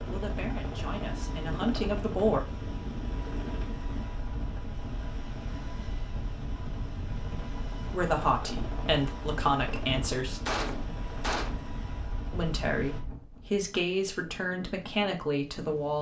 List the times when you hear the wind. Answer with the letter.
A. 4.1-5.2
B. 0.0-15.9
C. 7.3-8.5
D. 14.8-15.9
B.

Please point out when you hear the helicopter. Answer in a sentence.
You can hear the helicopter from 0.0 to 13.0 s.